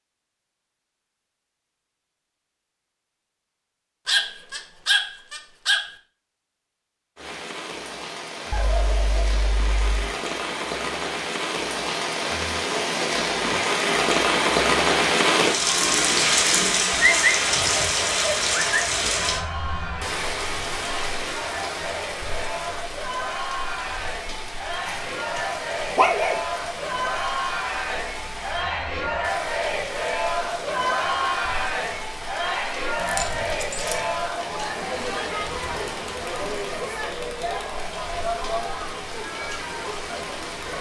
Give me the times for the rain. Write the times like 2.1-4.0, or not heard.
7.2-40.7.